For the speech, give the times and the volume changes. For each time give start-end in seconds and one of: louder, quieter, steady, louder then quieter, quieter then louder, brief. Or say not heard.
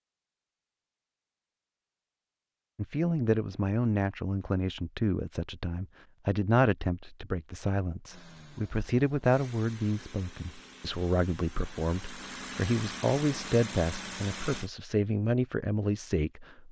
2.8-16.6 steady.